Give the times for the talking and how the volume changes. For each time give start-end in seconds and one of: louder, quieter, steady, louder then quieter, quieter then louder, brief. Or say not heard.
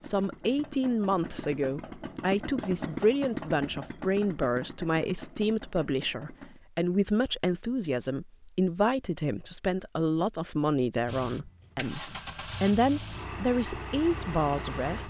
0.0-15.0 steady.